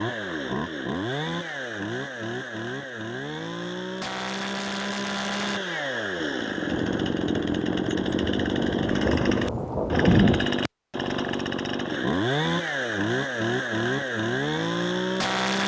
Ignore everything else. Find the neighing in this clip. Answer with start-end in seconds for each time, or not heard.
not heard.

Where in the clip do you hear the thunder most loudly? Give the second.
10 s.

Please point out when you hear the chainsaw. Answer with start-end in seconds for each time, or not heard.
0.0-15.6.